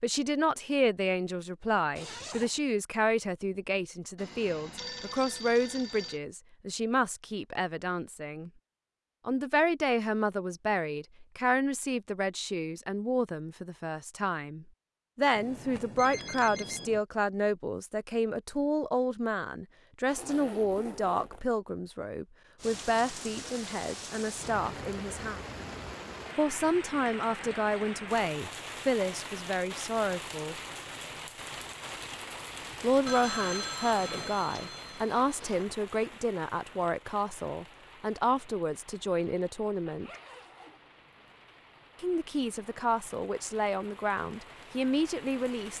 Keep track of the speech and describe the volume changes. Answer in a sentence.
The loudness of the speech stays about the same.